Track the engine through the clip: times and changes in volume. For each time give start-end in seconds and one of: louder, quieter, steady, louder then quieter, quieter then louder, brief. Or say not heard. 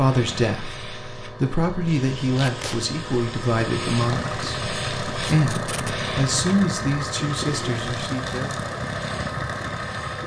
0.1-10.2 louder.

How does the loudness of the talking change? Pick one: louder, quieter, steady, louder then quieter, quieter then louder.
quieter.